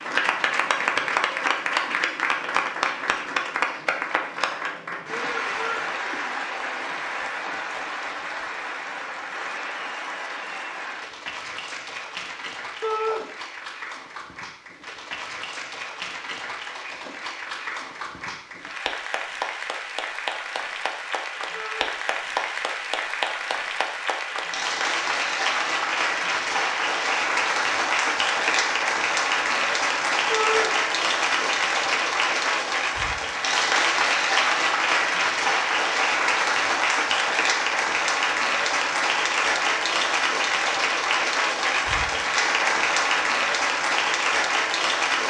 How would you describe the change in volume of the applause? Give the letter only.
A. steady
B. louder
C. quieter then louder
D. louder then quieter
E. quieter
C.